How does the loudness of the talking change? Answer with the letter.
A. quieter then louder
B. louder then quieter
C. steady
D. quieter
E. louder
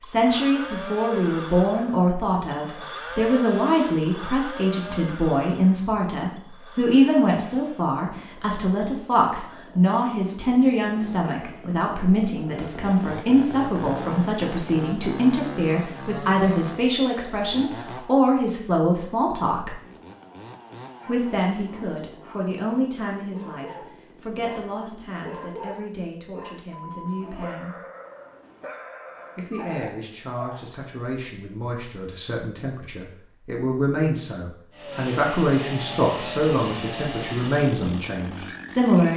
A.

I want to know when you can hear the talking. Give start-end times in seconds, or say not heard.
0.0-19.8, 21.1-27.8, 29.4-39.1.